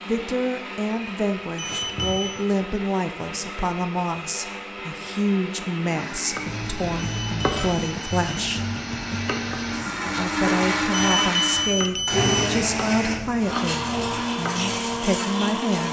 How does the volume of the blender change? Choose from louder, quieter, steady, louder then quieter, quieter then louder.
louder.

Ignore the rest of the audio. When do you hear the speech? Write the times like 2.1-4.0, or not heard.
0.1-8.6, 10.2-15.8.